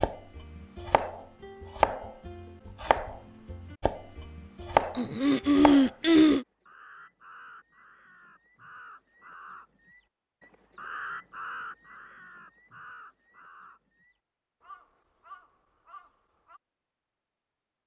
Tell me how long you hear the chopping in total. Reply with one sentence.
The chopping can be heard for 6 seconds in total.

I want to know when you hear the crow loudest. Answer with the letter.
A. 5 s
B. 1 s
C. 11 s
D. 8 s
C.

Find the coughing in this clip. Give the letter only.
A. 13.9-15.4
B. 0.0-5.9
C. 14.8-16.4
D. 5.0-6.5
D.